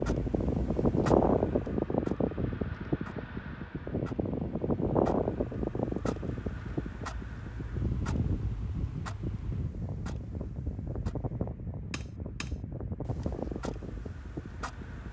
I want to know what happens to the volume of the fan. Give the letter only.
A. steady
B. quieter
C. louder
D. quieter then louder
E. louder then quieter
B.